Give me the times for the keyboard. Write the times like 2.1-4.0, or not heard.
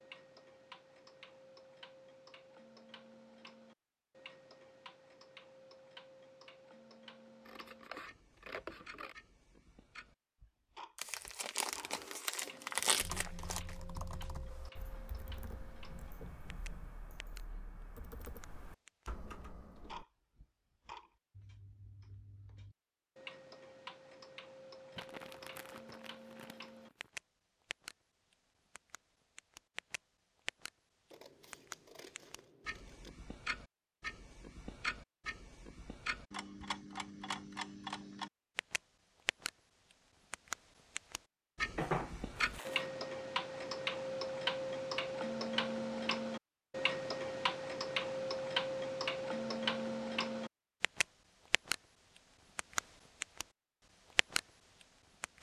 13.0-20.1.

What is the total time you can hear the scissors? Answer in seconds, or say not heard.
4 s.